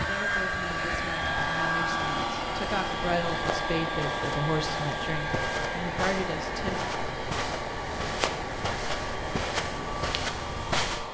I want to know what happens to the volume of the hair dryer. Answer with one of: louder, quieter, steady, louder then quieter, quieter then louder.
quieter.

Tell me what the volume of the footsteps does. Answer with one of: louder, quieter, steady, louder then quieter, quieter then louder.
louder.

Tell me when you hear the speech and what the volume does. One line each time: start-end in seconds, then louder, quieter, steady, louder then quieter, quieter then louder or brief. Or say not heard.
0.1-6.8 louder.